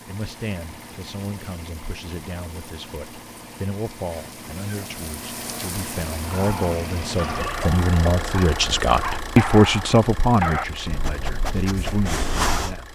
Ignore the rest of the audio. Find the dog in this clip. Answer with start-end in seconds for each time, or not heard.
6.2-12.8.